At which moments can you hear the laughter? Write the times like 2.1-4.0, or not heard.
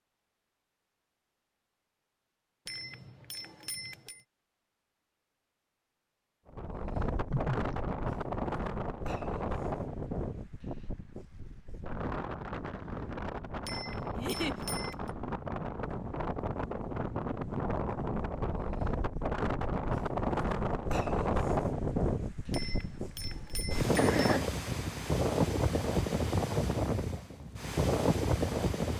7.3-7.8, 14.2-14.6, 23.9-24.5.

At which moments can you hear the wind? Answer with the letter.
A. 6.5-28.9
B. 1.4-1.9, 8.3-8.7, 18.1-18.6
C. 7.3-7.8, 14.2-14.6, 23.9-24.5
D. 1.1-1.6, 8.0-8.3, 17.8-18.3
A.